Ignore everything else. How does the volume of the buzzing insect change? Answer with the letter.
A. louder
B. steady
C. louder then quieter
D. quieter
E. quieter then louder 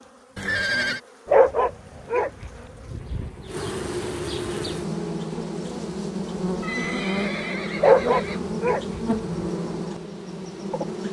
A.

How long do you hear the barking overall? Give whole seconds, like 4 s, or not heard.
4 s.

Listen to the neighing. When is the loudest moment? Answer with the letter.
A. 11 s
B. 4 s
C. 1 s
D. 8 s
C.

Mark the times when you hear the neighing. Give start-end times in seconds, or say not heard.
0.3-1.0, 6.6-8.5.